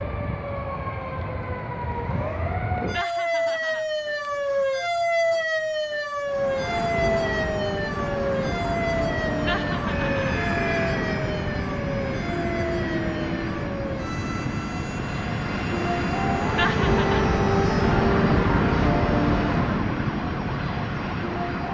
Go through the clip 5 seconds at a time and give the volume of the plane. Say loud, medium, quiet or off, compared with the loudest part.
off, medium, medium, loud, medium.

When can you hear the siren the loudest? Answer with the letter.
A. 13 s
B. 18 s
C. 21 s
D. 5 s
D.